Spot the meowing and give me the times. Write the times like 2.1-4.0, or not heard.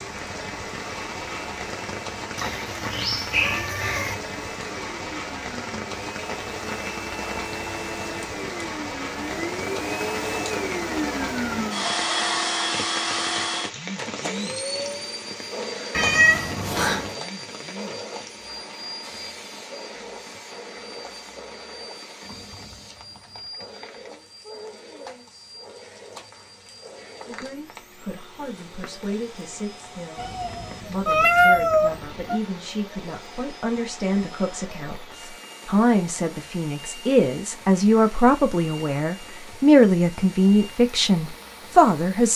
2.4-4.2, 15.9-17.1, 30.1-32.4.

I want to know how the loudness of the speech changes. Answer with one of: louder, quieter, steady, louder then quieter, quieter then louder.
louder.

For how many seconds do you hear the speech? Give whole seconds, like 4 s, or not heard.
15 s.